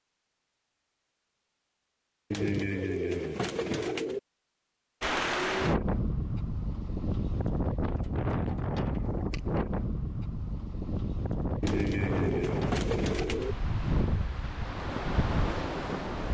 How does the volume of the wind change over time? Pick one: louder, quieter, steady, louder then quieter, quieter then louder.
steady.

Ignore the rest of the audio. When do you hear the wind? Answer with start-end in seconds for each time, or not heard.
5.0-16.2.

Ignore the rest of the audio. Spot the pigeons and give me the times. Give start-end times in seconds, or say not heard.
2.3-4.2, 11.6-13.6.